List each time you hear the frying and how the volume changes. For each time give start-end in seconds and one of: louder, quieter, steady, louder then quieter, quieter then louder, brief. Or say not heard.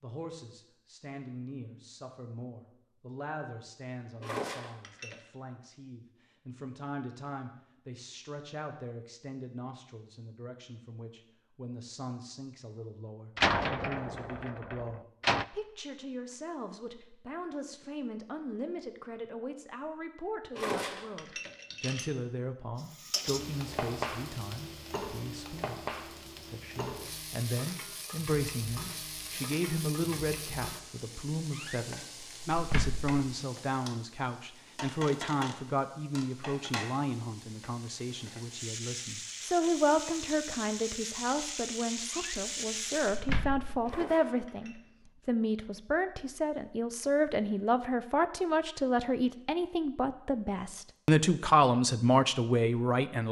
22.8-43.2 quieter then louder.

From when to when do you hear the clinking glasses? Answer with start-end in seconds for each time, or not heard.
4.2-5.2, 20.5-22.1, 43.8-44.8.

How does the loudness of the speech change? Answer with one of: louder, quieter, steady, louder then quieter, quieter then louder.
louder.